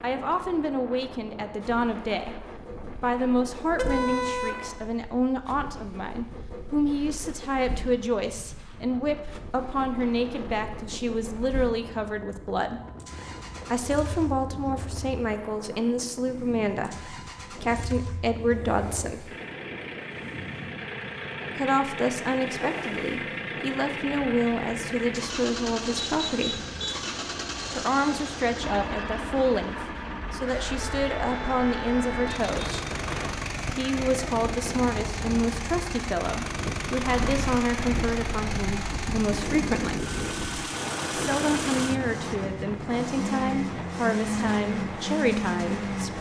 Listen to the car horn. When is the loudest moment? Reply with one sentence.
The volume of the car horn peaks at 4 seconds.